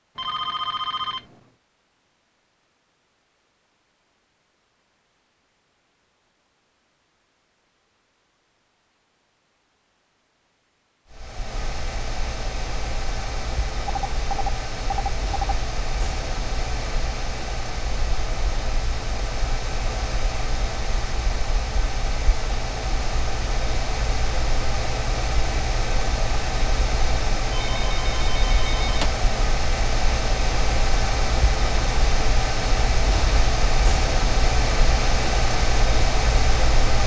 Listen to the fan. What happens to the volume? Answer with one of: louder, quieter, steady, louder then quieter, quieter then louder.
louder.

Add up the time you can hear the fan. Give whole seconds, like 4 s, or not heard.
26 s.